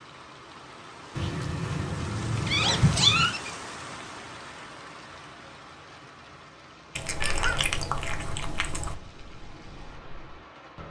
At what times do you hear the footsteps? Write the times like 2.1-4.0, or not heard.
not heard.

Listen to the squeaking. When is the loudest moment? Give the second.
3 s.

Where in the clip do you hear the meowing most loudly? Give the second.
3 s.